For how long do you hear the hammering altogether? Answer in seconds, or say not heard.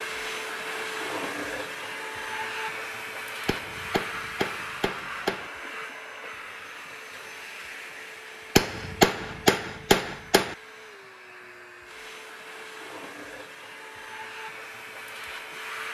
4 s.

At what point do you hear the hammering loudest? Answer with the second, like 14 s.
9 s.